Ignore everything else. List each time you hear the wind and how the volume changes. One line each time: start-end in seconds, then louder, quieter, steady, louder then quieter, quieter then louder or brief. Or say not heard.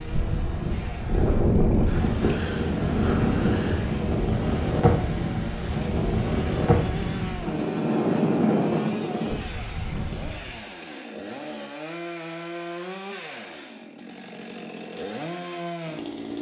0.0-10.6 steady.